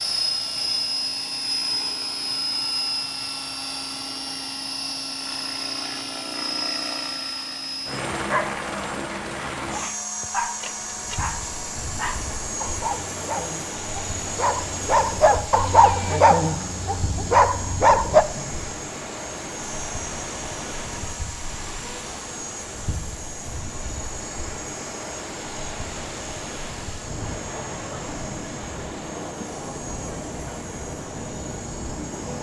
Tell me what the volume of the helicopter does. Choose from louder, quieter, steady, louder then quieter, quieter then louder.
quieter.